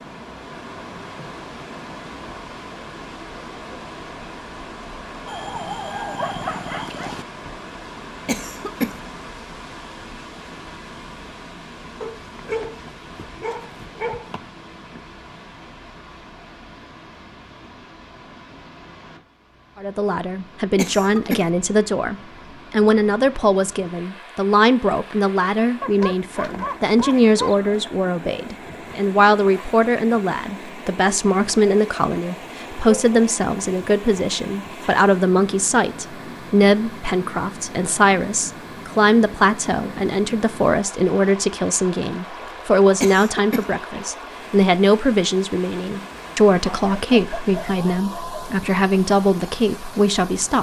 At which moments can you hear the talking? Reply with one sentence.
The talking can be heard from 19.8 to 50.5 s.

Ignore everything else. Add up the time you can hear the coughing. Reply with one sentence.
The coughing can be heard for 2 seconds in total.